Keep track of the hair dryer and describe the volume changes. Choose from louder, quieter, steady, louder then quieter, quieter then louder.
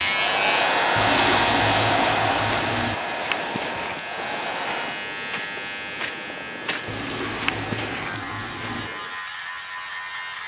quieter.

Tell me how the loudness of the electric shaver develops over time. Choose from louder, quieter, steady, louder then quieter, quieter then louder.
quieter.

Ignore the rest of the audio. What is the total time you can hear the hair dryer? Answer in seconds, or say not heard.
5 s.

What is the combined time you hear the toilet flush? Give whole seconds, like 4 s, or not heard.
4 s.